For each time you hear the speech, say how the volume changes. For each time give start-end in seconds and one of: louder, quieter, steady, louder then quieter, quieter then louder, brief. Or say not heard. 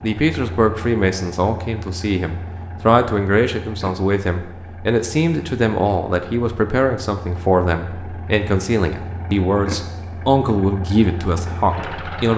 0.0-12.3 steady.